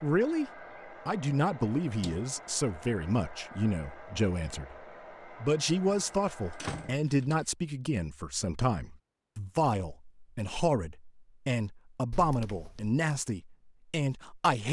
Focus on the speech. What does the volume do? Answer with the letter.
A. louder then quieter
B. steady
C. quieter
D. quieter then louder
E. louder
B.